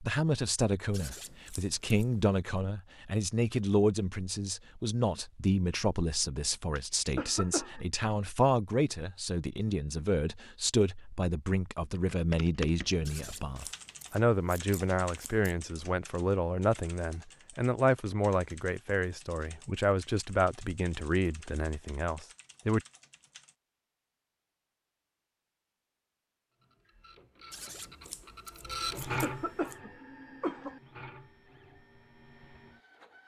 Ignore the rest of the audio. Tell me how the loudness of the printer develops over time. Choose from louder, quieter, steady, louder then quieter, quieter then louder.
louder then quieter.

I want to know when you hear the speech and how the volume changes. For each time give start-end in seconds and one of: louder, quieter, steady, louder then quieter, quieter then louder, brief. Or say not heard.
0.0-22.8 steady.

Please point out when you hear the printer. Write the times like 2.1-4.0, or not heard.
26.6-33.2.